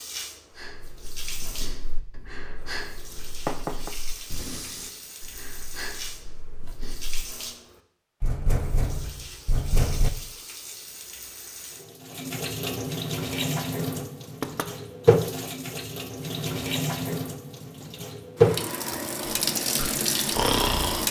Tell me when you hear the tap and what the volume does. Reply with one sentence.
You can hear the tap from 0.0 to 21.0 s, getting louder.